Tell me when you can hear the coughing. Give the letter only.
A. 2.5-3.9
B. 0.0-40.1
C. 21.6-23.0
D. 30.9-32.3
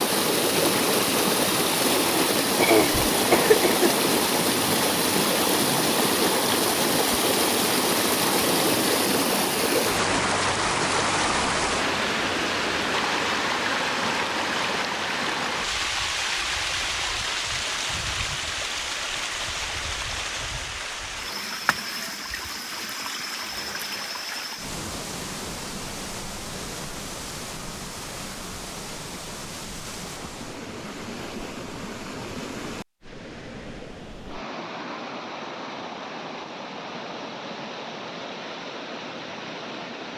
A.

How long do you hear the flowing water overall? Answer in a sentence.
You can hear the flowing water for 40 seconds altogether.